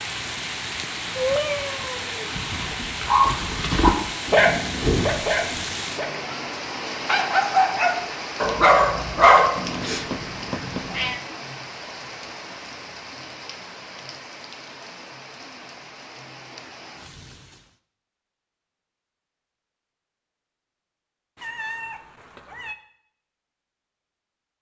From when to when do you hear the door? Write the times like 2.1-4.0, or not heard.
4.2-5.7.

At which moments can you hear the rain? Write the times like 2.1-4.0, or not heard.
0.0-17.8.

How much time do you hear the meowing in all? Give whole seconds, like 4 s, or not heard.
4 s.